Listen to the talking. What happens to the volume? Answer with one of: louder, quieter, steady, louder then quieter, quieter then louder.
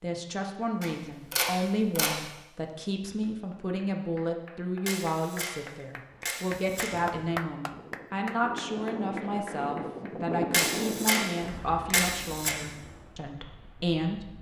steady.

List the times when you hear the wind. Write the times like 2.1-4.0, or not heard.
6.0-14.3.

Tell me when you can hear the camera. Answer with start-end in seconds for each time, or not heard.
0.8-2.1, 4.8-6.9, 10.5-12.6.